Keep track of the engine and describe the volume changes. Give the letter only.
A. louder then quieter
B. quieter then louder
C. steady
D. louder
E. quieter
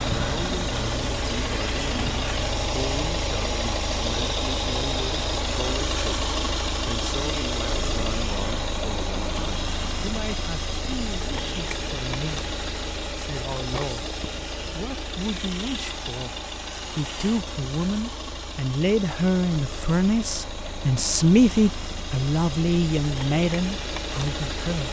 E.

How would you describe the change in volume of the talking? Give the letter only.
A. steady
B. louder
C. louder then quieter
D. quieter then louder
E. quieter
B.